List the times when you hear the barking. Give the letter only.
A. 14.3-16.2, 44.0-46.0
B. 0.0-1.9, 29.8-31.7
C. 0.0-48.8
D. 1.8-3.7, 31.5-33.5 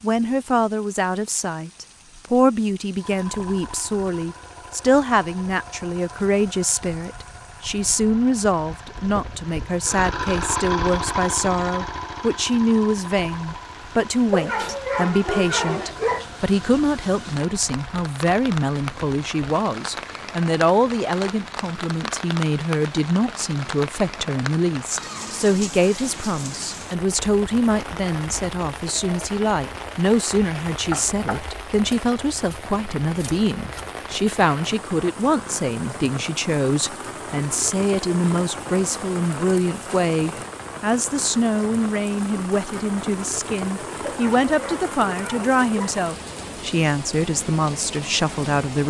A.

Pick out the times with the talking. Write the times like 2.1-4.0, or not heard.
0.0-48.8.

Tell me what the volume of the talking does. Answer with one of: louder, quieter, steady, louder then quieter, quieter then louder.
steady.